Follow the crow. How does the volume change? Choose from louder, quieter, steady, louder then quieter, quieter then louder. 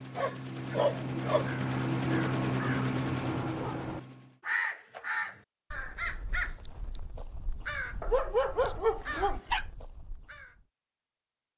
quieter.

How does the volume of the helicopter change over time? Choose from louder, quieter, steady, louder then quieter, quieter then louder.
louder then quieter.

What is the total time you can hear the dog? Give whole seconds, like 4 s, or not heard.
3 s.